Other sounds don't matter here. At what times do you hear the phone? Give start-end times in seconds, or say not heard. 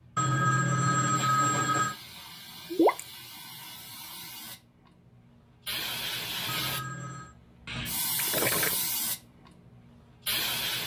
0.1-1.9, 6.5-7.3.